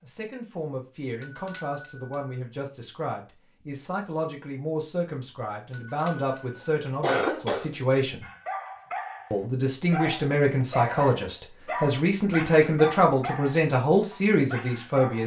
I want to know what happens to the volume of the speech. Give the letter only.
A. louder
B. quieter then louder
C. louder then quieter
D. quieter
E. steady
A.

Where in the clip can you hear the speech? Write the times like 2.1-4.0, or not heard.
0.0-8.2, 9.3-15.2.